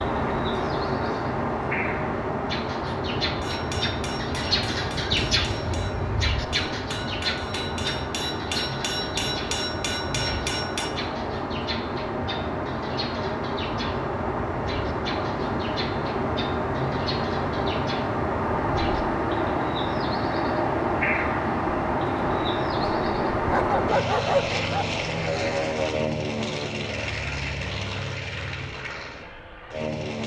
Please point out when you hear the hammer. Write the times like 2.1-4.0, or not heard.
3.4-10.9.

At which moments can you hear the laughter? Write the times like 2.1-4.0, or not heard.
not heard.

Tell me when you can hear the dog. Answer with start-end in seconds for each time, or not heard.
23.5-24.9.